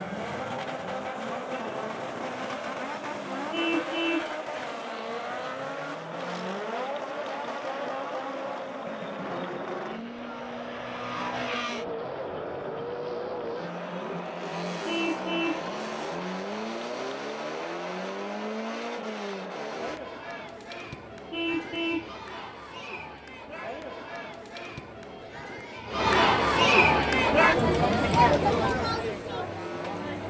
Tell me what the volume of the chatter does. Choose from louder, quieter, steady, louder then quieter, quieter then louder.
louder.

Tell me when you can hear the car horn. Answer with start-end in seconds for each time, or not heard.
3.5-4.3, 14.8-15.7, 21.3-22.1.